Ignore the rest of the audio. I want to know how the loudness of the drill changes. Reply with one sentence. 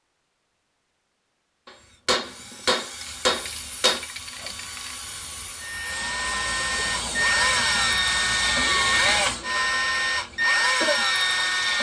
The loudness of the drill goes up.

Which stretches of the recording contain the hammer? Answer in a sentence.
You can hear the hammer from 1.6 to 4.0 s.